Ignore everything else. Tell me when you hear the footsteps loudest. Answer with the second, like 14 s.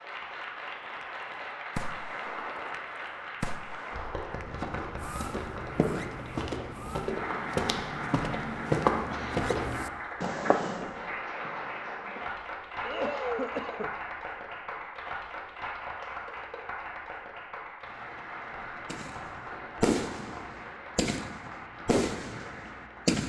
9 s.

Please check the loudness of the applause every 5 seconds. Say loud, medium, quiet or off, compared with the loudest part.
loud, loud, loud, loud, medium.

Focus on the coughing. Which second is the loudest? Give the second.
13 s.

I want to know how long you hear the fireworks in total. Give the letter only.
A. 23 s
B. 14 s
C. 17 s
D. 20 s
B.